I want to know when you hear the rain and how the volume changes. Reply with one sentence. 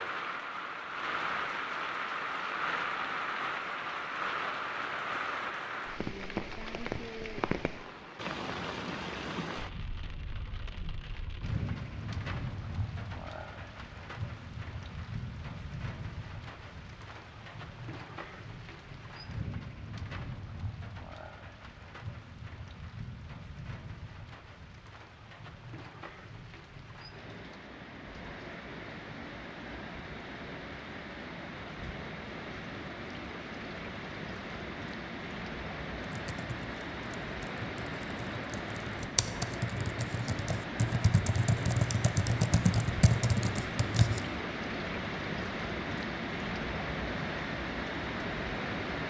You can hear the rain from 0.0 to 49.0 s, getting quieter then louder.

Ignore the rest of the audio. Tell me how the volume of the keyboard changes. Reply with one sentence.
The volume of the keyboard goes up.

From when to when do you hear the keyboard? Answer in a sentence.
The keyboard can be heard from 36.0 to 44.2 s.